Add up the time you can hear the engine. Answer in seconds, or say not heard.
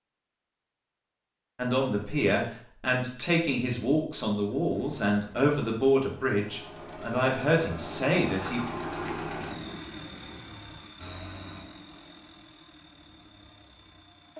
10 s.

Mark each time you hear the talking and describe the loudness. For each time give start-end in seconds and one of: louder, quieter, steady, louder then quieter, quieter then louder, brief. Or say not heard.
1.6-8.7 steady.